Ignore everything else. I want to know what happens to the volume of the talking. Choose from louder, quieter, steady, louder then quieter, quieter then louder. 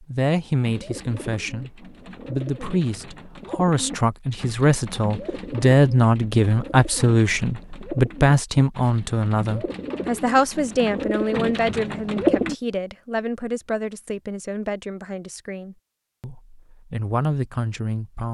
louder then quieter.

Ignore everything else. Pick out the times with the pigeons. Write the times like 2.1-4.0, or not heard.
0.6-12.6.